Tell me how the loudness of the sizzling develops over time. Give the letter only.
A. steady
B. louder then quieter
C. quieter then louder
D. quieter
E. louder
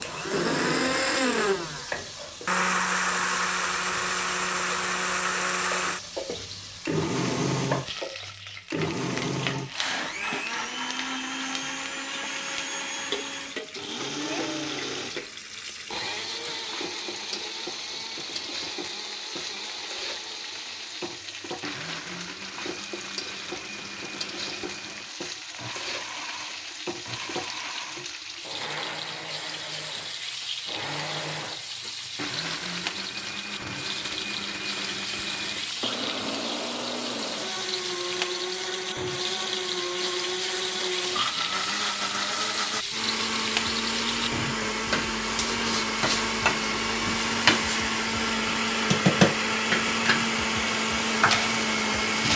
E.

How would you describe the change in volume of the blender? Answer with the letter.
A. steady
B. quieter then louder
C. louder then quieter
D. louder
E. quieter
B.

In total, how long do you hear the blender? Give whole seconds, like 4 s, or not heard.
52 s.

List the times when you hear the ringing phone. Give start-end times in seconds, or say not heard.
not heard.